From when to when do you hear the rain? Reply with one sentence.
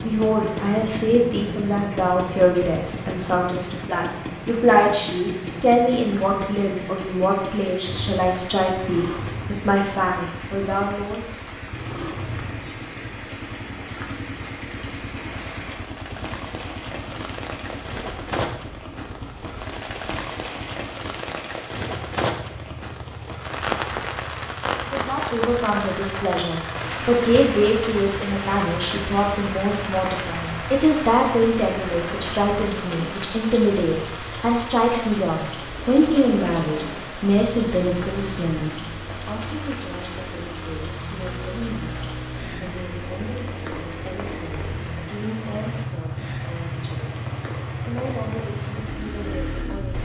The rain can be heard from 0.0 to 49.9 s.